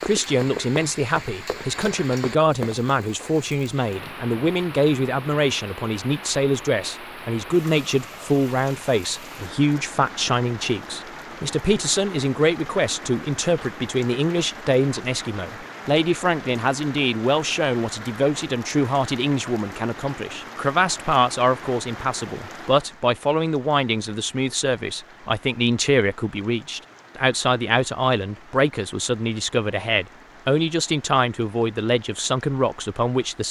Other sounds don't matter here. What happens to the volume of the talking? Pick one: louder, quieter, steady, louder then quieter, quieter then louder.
steady.